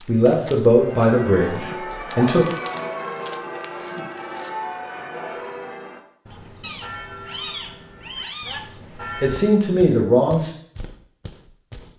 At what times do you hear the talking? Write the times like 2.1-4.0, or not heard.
0.1-2.5, 9.2-10.5.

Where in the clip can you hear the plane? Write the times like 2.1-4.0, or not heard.
not heard.